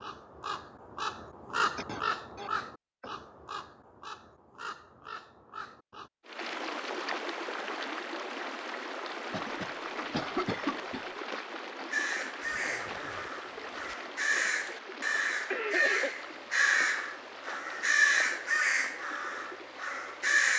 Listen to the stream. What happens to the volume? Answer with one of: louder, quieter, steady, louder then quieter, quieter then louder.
quieter.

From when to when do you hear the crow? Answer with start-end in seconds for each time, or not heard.
0.0-6.1, 11.9-20.5.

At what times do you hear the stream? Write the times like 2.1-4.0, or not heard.
6.2-20.5.